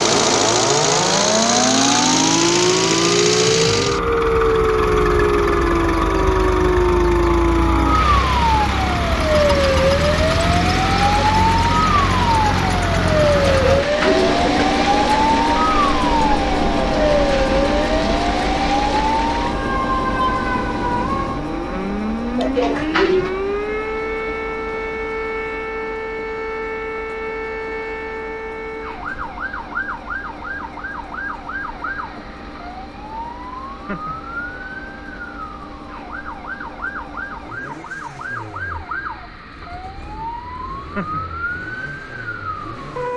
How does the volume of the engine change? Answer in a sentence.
The volume of the engine goes down.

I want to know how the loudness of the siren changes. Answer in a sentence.
The loudness of the siren goes down.